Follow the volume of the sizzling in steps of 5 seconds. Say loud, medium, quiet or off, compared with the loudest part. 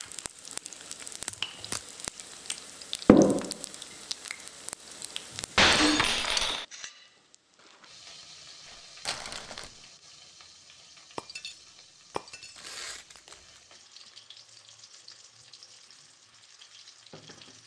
loud, medium, quiet, quiet.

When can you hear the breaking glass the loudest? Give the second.
6 s.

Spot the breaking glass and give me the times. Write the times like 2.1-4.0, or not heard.
5.5-6.7, 11.2-12.6.